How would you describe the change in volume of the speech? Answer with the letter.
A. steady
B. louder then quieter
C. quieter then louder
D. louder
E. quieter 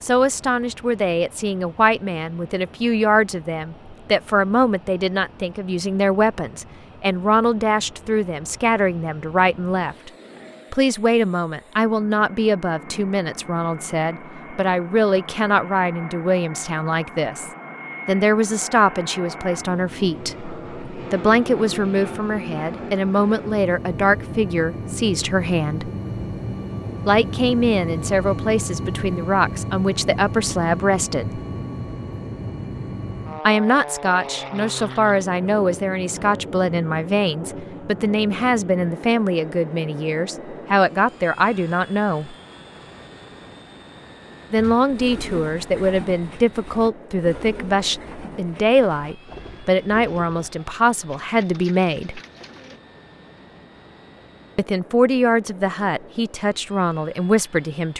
A.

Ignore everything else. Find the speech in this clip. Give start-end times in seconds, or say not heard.
0.0-10.1, 10.7-25.9, 27.1-31.4, 33.5-42.4, 44.5-52.2, 54.5-57.9.